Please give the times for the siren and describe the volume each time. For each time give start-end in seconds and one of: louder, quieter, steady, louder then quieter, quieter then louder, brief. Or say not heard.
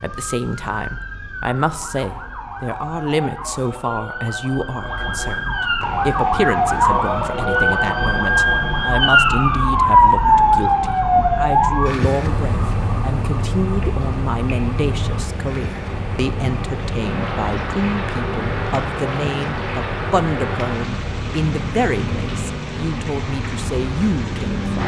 0.0-24.8 louder then quieter.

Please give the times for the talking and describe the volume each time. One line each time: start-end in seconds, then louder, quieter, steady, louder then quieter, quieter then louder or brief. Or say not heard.
0.0-24.8 steady.